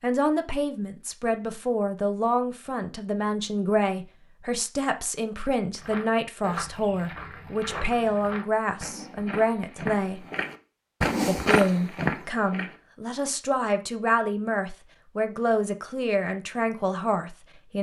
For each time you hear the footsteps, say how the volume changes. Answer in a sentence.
You can hear the footsteps from 5.8 to 12.8 s, getting louder.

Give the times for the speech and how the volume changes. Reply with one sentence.
You can hear the speech from 0.0 to 10.2 s, at a steady volume; and from 11.2 to 17.7 s, at a steady volume.